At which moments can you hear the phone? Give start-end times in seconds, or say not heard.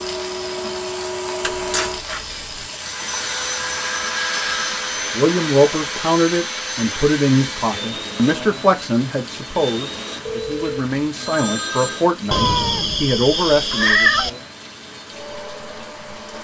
3.5-5.0, 10.2-12.0.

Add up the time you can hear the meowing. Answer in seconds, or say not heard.
3 s.